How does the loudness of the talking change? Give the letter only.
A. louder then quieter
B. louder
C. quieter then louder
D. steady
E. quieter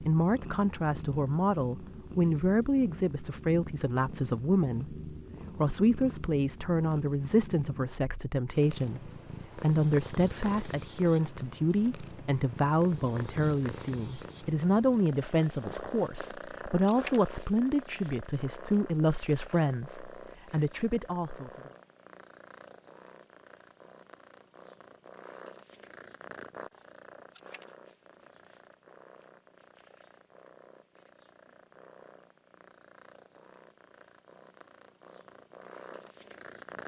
D.